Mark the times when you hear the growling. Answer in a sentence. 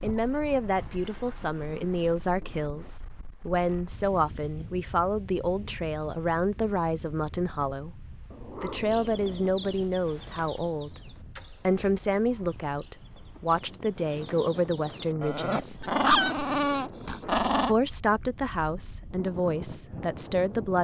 You can hear the growling from 0.1 to 1.0 s, from 8.3 to 9.6 s and from 15.2 to 17.8 s.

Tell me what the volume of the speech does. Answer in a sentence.
The loudness of the speech stays about the same.